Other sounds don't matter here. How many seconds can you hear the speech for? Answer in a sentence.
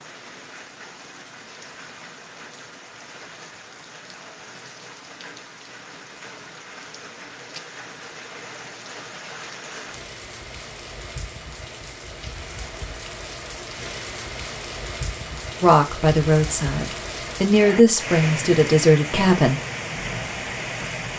You can hear the speech for 4 seconds altogether.